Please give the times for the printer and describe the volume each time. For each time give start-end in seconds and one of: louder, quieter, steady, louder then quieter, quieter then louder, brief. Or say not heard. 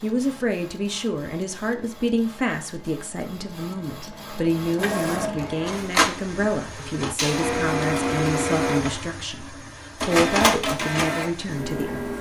0.0-12.1 louder.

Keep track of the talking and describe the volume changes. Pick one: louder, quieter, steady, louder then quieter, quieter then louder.
steady.